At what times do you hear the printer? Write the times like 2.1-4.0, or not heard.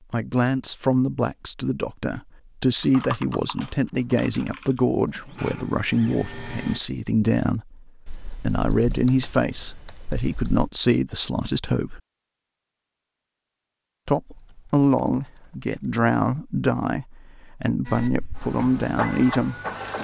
5.0-6.8, 17.9-19.9.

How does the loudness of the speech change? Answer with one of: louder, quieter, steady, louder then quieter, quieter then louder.
steady.